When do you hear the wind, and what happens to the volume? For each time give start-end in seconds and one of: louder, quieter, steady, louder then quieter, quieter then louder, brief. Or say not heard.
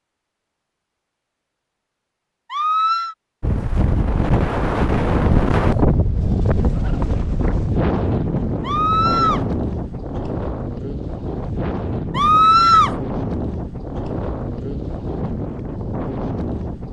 3.4-16.8 quieter.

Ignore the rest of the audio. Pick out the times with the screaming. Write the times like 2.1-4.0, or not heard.
2.5-3.1, 8.6-9.4, 12.2-12.9.